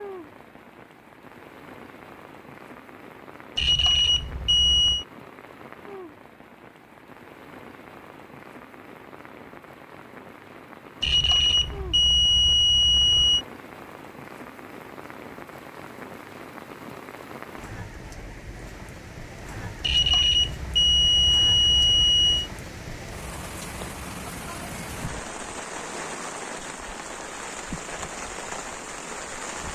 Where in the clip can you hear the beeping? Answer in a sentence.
The beeping can be heard from 3.5 to 5.0 s, from 11.0 to 13.4 s and from 19.8 to 22.5 s.